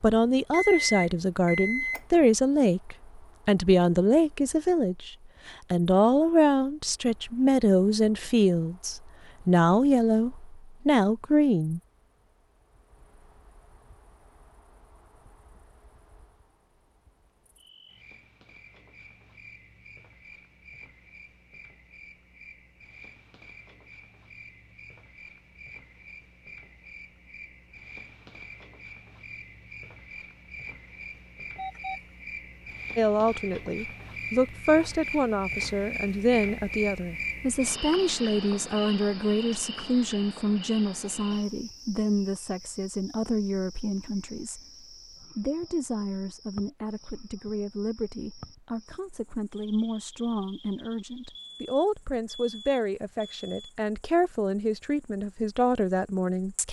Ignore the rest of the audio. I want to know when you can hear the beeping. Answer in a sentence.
The beeping can be heard from 0.5 to 2.2 s, from 31.6 to 32.0 s and from 51.4 to 53.8 s.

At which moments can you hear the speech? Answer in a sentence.
You can hear the speech from 0.0 to 11.8 s and from 33.0 to 56.6 s.